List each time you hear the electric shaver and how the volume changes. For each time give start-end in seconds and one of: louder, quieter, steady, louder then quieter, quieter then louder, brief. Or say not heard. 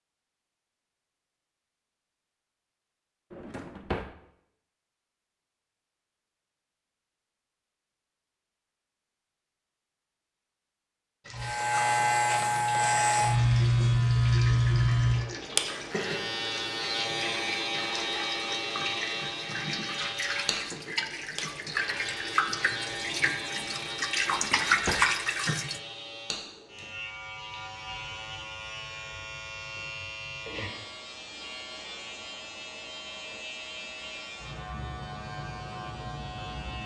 11.3-36.8 quieter.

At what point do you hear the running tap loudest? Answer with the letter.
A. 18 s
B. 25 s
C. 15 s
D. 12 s
B.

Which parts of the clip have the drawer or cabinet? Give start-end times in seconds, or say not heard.
3.3-4.2, 24.2-25.1.